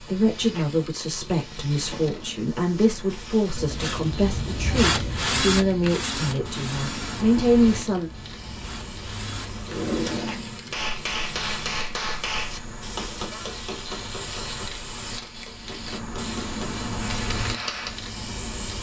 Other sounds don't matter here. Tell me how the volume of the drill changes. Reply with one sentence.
The loudness of the drill goes down, then up.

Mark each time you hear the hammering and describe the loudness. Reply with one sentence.
The hammering can be heard from 10.7 to 18.0 s, getting quieter then louder.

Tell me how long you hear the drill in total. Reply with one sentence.
The drill can be heard for 7 seconds in total.